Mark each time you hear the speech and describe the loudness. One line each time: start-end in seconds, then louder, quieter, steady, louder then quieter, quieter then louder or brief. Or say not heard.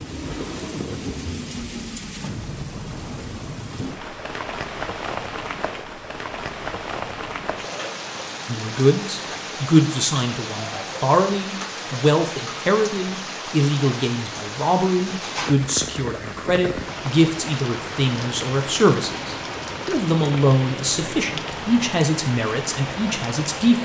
8.4-23.8 steady.